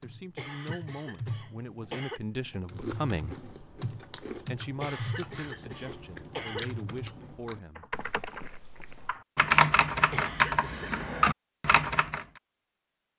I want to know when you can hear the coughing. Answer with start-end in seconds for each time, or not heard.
0.3-2.2, 4.8-6.8, 10.1-10.9.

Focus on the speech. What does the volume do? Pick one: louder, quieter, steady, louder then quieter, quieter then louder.
louder then quieter.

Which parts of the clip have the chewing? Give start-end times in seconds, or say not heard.
2.6-9.2.